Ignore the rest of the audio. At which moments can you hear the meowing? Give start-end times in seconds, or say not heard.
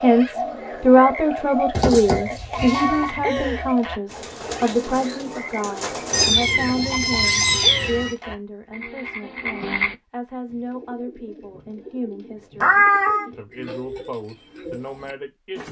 1.7-3.1, 6.1-8.2, 12.6-13.2.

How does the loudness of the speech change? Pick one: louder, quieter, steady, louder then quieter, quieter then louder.
quieter.